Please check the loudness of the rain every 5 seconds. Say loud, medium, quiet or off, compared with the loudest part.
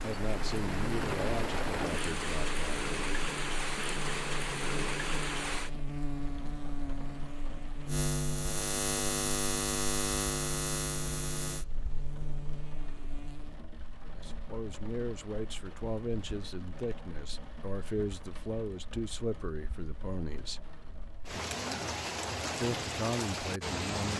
loud, medium, quiet, quiet, loud.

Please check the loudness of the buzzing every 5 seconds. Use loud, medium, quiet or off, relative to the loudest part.
medium, loud, loud, off, off.